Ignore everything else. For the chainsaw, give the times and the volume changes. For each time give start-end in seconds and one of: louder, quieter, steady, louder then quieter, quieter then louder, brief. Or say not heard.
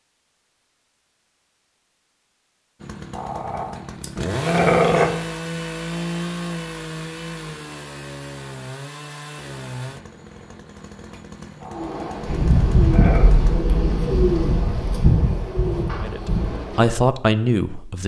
2.8-13.6 quieter.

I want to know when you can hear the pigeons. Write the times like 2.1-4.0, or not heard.
11.7-17.0.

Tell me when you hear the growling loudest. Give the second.
5 s.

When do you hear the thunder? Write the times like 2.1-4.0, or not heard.
12.2-15.1.